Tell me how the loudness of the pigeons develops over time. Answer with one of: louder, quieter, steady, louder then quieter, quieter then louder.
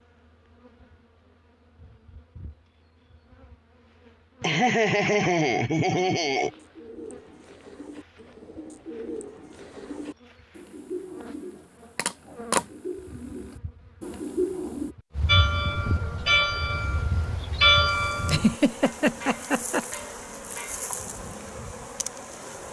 louder.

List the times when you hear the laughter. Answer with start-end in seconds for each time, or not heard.
4.4-6.5, 18.2-19.9.